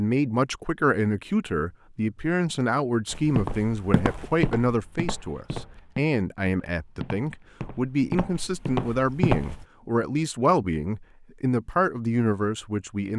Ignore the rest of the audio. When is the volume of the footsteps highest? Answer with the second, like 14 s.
9 s.